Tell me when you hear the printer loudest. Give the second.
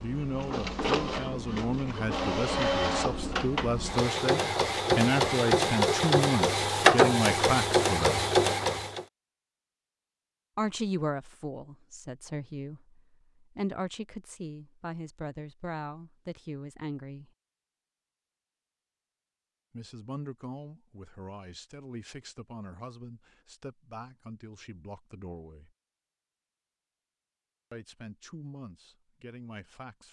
7 s.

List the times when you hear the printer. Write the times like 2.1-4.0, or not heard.
0.0-9.1.